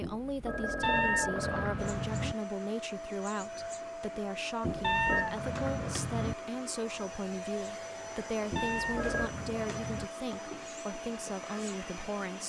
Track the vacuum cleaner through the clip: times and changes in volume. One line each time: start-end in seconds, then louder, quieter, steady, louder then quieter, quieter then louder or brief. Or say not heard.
1.8-12.4 steady.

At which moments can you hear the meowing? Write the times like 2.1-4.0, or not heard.
0.8-2.4, 4.8-6.3, 8.6-10.1.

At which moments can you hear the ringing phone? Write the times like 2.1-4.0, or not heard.
0.0-1.9, 4.6-5.3, 8.5-9.3.